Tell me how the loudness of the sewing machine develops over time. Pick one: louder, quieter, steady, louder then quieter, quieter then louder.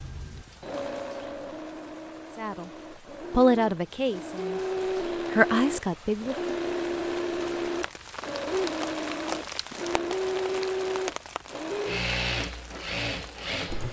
louder.